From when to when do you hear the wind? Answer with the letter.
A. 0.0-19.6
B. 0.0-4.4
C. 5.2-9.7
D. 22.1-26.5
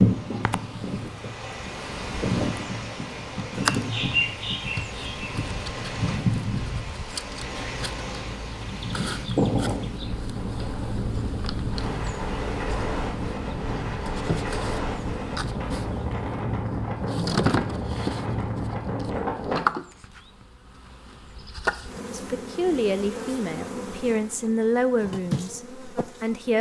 A.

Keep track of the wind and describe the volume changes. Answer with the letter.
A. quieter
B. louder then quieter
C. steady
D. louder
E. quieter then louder
C.